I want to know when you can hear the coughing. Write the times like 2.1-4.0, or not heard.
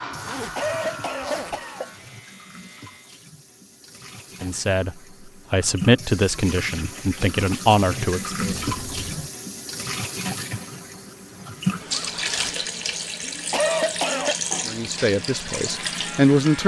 0.6-1.9, 13.5-14.3.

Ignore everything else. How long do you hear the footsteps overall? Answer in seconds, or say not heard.
not heard.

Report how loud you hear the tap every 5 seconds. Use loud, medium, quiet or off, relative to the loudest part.
quiet, loud, loud, loud.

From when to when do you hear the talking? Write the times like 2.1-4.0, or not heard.
4.4-8.6, 14.7-16.6.